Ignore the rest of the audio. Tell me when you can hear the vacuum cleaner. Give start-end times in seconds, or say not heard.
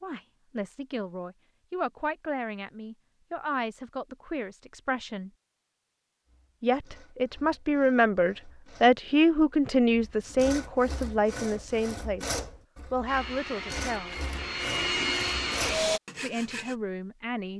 13.1-16.0.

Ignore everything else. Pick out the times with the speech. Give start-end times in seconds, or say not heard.
0.0-5.3, 6.6-14.2, 16.1-17.5.